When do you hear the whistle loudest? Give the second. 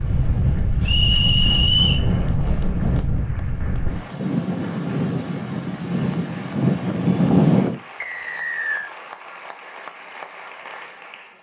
2 s.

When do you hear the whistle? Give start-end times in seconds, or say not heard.
0.8-2.0, 8.0-8.9.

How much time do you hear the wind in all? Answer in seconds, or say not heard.
8 s.